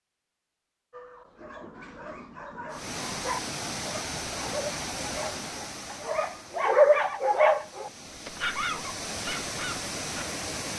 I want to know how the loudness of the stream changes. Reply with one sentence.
The volume of the stream goes down, then up.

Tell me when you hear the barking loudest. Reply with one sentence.
The loudest moment of the barking is at 7 seconds.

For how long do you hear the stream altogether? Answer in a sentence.
The stream can be heard for 8 seconds in total.